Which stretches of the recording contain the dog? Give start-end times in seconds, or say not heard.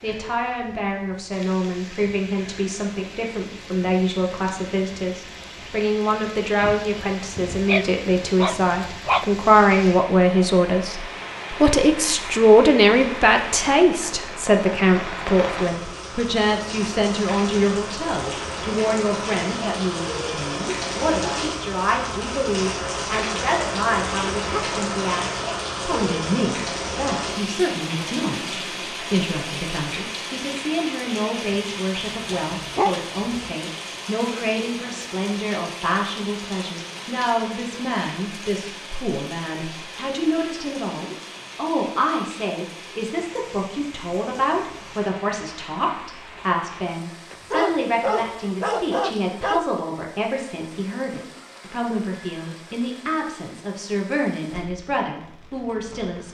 6.6-9.3, 31.9-33.5, 47.3-49.6.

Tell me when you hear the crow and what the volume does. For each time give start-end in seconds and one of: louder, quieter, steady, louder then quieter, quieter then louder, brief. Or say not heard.
not heard.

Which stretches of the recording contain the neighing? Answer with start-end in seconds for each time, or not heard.
not heard.